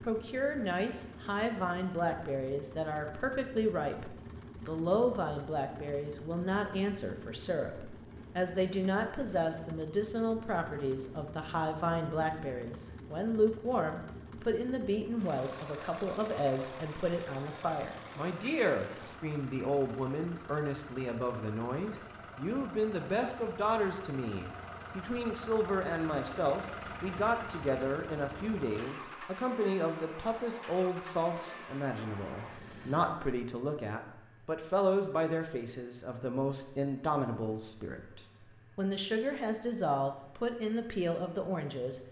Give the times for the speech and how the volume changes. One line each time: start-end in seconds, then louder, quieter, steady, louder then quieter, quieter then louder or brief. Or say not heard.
0.0-42.0 steady.